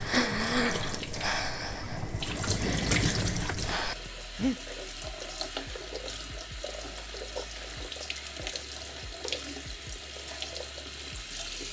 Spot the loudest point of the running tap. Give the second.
3 s.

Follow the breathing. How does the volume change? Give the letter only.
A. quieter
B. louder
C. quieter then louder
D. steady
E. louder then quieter
C.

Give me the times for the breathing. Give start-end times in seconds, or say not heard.
0.0-4.5.